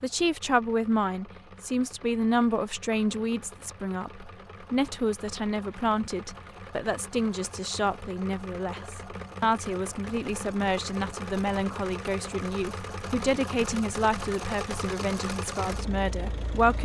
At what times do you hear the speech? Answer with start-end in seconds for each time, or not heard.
0.0-16.8.